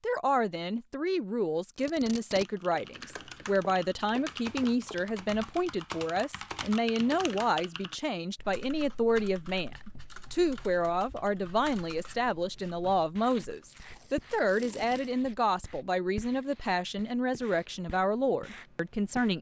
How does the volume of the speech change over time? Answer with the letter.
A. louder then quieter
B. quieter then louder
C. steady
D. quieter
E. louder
C.